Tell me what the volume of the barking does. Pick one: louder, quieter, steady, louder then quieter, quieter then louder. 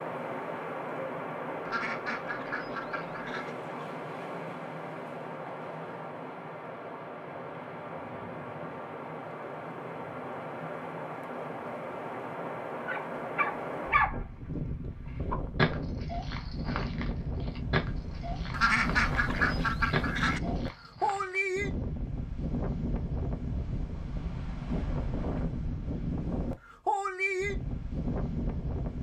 quieter then louder.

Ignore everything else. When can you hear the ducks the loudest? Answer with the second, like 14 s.
19 s.